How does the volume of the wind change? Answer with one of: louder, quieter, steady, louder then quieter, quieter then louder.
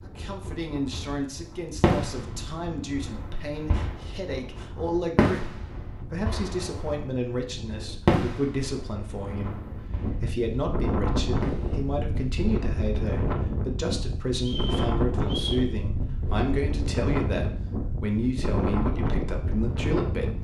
louder.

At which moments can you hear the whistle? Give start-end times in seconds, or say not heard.
14.3-15.7.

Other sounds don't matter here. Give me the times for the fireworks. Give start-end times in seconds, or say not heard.
1.8-4.0, 5.2-7.0, 8.1-10.3, 11.4-11.8.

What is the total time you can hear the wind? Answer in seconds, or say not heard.
20 s.